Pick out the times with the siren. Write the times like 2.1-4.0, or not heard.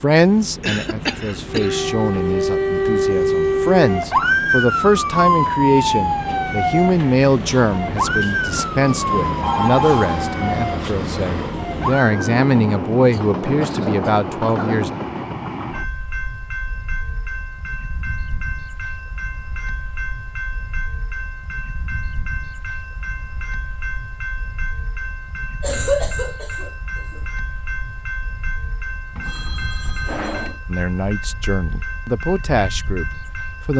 1.4-12.4.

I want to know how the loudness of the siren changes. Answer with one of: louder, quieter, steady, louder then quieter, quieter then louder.
quieter.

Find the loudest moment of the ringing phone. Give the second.
10 s.